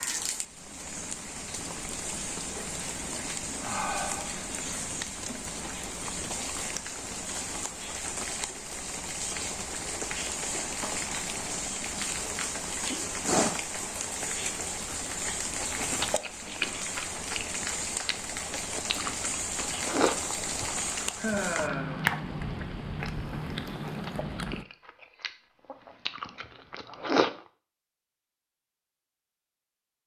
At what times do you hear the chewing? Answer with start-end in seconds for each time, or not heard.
15.8-27.3.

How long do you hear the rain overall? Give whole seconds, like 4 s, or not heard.
25 s.